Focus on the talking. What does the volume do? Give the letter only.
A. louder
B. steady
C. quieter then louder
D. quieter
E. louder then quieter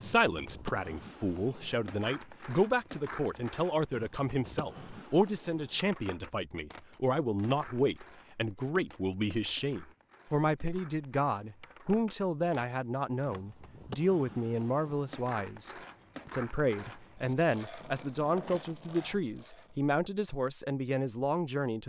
B.